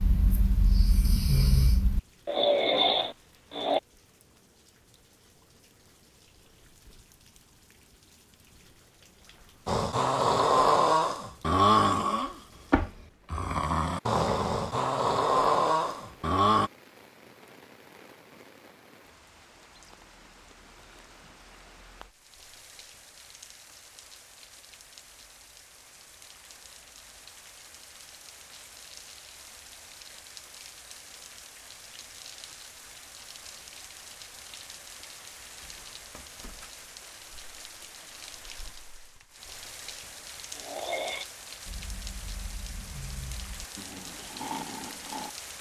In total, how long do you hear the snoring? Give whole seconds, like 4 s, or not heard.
16 s.